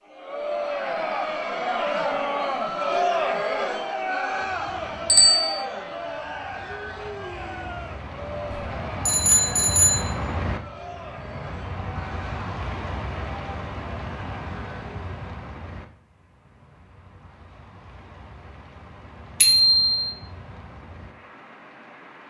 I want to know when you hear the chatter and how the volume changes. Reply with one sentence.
The chatter can be heard from 0.0 to 15.1 s, getting quieter.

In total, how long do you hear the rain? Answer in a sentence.
You can hear the rain for 18 seconds altogether.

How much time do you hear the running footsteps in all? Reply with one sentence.
You can't hear the running footsteps here.